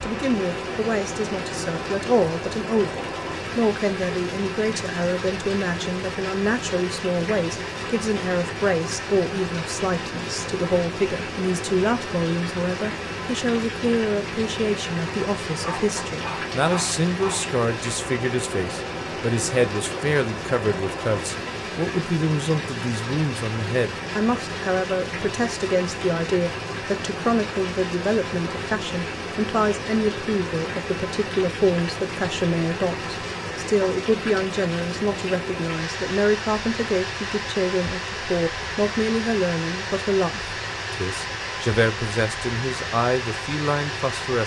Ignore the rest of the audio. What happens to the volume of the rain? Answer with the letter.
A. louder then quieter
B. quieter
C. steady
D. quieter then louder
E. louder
C.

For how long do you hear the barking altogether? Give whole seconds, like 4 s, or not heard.
2 s.